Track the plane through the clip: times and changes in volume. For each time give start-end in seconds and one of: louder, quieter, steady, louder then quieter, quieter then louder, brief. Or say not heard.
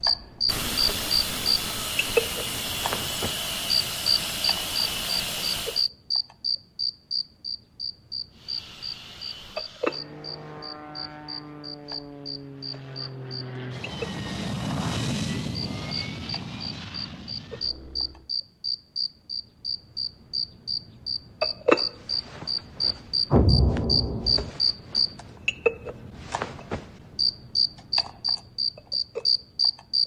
0.0-5.9 steady
8.3-18.3 louder then quieter.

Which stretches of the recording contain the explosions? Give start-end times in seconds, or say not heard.
23.3-24.5.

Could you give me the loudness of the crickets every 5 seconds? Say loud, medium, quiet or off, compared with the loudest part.
loud, loud, quiet, medium, loud, loud.